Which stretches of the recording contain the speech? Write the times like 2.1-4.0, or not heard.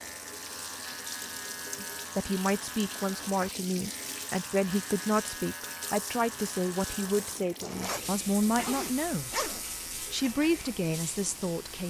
1.8-11.8.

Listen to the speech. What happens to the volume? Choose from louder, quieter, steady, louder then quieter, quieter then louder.
steady.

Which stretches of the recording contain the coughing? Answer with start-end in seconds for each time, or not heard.
not heard.